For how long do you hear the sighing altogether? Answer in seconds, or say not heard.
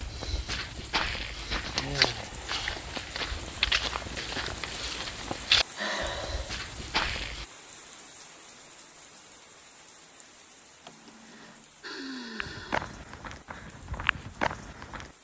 4 s.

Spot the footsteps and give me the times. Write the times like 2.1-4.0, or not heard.
0.0-7.5, 12.4-15.1.